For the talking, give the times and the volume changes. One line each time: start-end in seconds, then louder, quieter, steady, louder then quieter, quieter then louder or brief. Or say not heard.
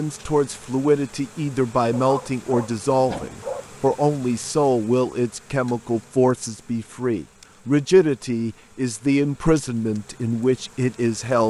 0.0-11.4 steady.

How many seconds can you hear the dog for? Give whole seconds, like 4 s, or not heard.
2 s.